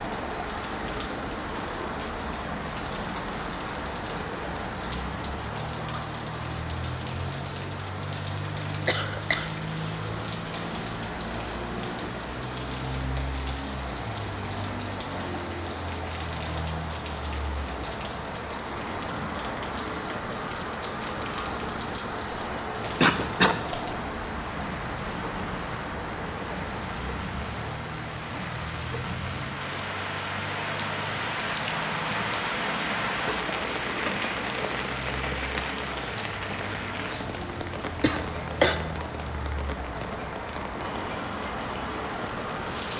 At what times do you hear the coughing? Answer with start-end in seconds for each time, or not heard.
8.8-9.9, 23.0-23.6, 38.0-38.8.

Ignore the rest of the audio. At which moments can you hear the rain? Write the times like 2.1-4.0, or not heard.
0.0-42.9.